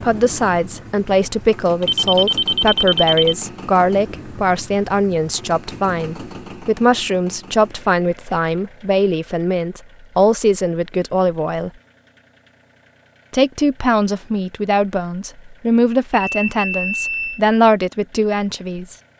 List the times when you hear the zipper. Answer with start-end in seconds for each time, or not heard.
not heard.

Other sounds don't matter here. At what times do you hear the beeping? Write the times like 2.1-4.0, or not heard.
1.8-3.4, 16.1-17.4.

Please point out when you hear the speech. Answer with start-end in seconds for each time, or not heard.
0.0-11.7, 13.3-18.9.